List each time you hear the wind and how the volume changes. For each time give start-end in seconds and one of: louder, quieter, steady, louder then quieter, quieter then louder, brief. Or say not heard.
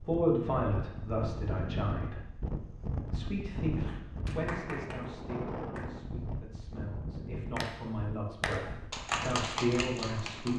0.0-10.5 quieter.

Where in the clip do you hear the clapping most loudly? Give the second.
9 s.